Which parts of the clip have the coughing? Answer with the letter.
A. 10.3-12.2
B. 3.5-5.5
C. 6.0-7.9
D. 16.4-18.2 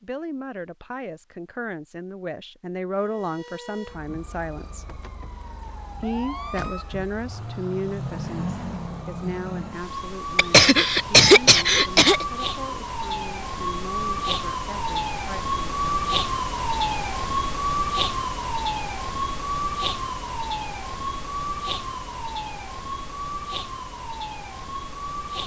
A.